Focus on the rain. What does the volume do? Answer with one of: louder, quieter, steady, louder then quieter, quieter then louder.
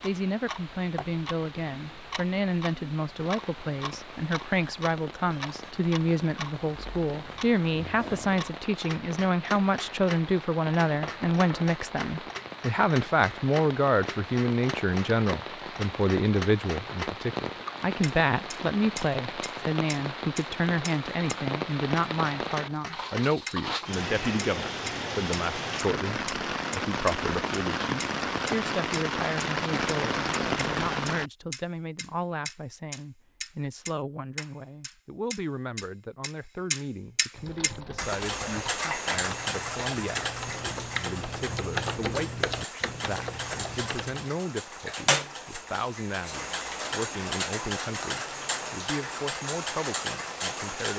louder.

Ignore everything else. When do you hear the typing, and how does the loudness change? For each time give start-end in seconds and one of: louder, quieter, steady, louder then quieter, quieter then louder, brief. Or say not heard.
37.4-44.5 louder then quieter.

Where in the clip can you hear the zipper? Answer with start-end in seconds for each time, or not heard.
not heard.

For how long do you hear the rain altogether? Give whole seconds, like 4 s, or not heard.
31 s.